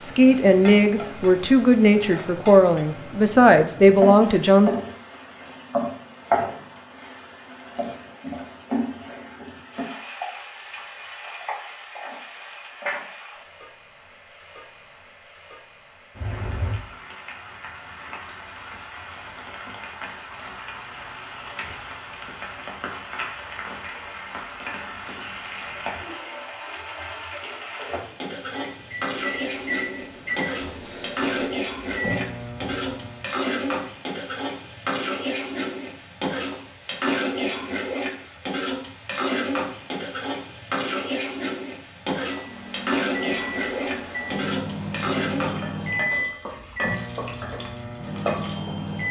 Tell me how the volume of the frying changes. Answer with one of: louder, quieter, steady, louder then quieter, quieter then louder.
quieter then louder.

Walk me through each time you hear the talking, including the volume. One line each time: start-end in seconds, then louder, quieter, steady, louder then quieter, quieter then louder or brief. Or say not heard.
0.0-4.7 steady.